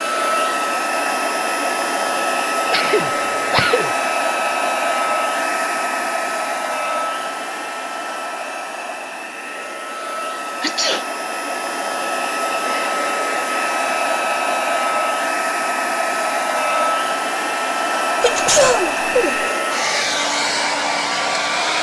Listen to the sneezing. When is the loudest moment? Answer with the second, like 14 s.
19 s.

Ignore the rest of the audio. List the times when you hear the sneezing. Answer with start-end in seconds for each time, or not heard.
2.7-3.9, 10.6-11.1, 18.2-19.4.